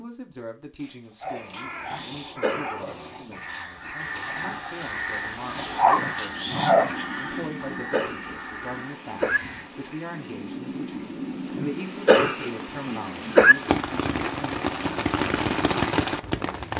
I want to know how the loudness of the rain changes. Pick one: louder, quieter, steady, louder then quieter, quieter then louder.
louder.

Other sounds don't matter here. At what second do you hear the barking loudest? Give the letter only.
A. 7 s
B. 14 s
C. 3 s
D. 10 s
A.